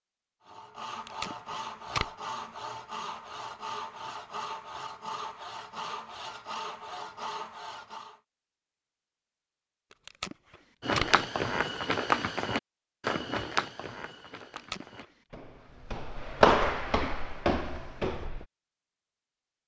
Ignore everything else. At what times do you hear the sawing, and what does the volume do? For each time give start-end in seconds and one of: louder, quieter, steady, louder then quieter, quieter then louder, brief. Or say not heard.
0.5-8.2 steady.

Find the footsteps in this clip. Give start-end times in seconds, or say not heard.
10.8-18.4.